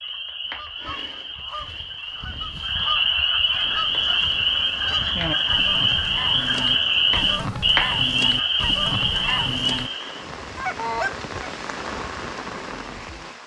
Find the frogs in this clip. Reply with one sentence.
You can hear the frogs from 0.0 to 10.2 s.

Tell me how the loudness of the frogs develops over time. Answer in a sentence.
The volume of the frogs goes up.